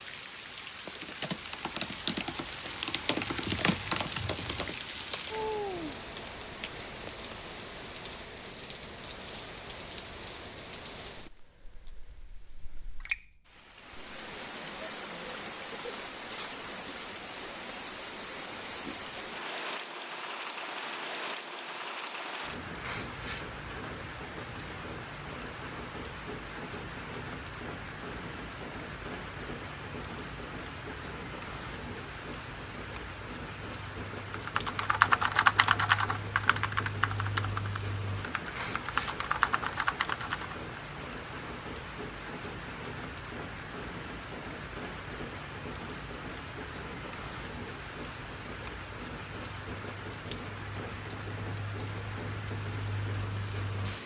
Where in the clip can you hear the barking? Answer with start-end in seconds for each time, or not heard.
not heard.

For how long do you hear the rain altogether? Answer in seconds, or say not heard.
54 s.